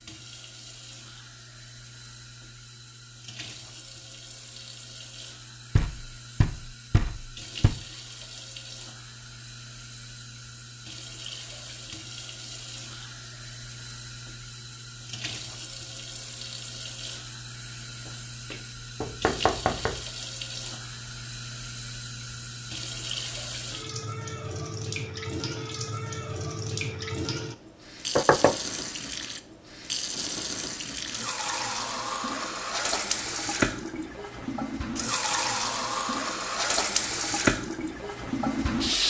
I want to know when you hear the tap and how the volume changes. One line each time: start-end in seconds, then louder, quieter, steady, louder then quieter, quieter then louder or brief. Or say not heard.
0.0-39.0 louder.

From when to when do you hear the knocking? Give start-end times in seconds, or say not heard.
5.8-7.8, 18.5-20.0, 28.1-28.6.